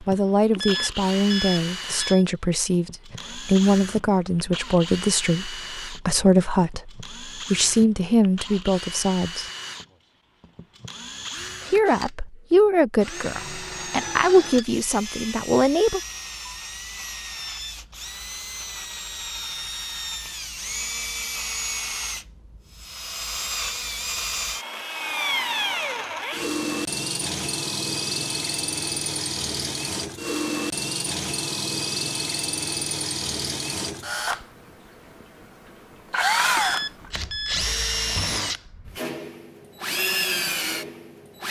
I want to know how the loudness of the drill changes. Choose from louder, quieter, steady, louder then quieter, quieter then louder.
louder.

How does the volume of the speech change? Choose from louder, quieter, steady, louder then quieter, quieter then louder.
steady.